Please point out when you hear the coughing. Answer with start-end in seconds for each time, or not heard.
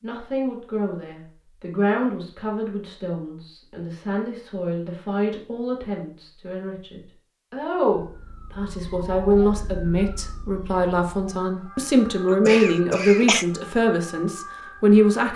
12.3-13.4.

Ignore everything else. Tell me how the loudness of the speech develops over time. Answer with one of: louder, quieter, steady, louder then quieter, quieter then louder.
louder.